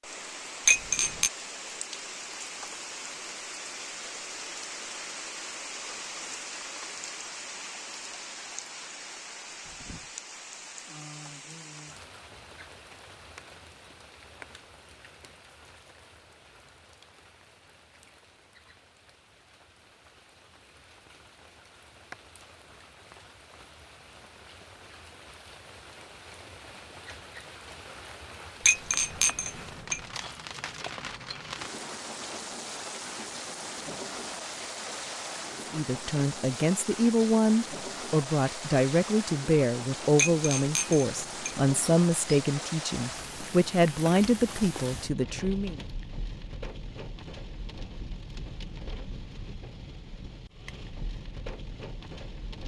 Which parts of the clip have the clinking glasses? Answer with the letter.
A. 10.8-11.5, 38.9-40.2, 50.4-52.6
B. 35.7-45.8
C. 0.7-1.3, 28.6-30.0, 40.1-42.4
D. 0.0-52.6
C.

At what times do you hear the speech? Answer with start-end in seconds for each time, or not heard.
35.7-45.8.